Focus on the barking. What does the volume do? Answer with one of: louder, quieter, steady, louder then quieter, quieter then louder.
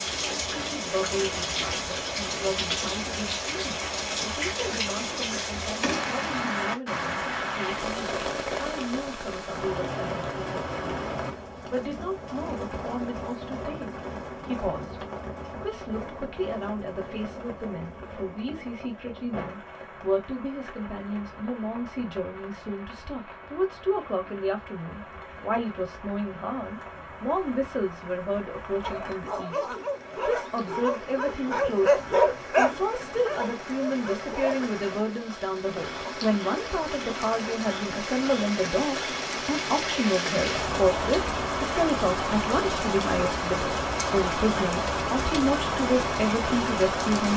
louder then quieter.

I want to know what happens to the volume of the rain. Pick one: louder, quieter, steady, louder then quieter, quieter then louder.
quieter then louder.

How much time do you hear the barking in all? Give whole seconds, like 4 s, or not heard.
6 s.